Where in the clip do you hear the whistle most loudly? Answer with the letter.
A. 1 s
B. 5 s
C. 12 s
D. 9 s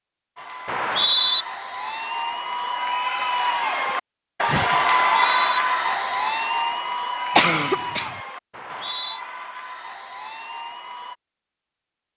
A.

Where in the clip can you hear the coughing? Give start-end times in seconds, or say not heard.
7.3-8.1.